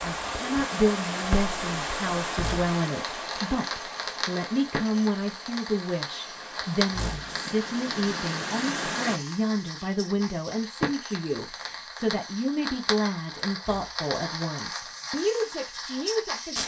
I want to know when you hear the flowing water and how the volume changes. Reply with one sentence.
You can hear the flowing water from 0.0 to 9.2 s, getting quieter then louder.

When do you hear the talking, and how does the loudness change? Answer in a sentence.
You can hear the talking from 0.0 to 16.6 s, at a steady volume.